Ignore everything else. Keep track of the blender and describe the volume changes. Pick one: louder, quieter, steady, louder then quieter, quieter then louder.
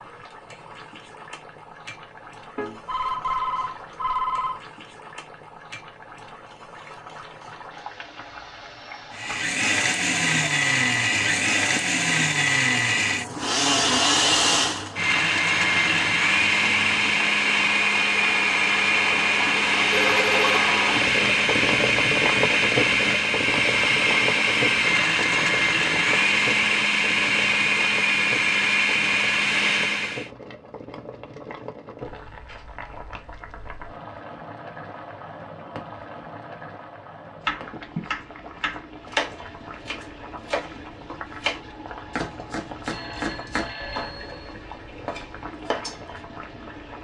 steady.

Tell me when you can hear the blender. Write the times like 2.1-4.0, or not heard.
9.1-30.3.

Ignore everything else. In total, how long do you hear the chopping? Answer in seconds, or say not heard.
9 s.